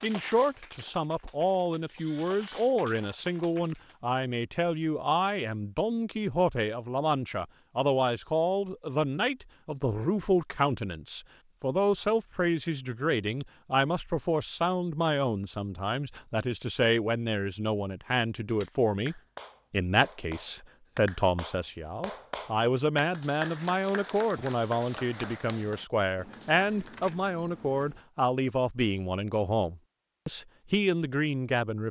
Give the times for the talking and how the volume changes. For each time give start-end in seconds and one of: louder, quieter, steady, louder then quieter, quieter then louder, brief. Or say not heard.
0.0-31.8 steady.